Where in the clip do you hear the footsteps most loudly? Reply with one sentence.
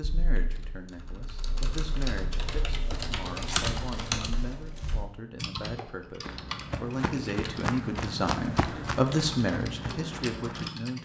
The loudest moment of the footsteps is at 8 seconds.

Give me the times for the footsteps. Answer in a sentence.
The footsteps can be heard from 5.8 to 10.7 s.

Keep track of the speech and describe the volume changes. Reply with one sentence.
The loudness of the speech goes up.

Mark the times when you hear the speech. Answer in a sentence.
The speech can be heard from 0.0 to 10.9 s.